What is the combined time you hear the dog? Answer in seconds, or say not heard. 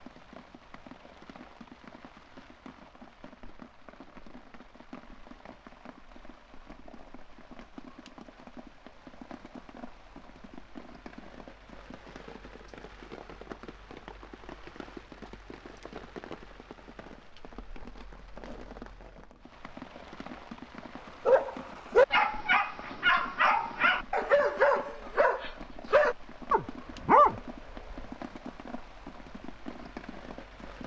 7 s.